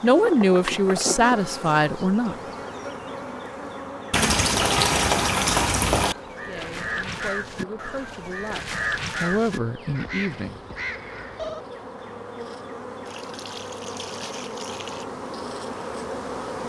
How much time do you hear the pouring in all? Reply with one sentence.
The pouring can be heard for 4 seconds in total.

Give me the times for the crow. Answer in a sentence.
You can hear the crow from 6.0 to 11.8 s.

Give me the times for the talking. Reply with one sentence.
The talking can be heard from 0.0 to 2.4 s and from 6.5 to 10.6 s.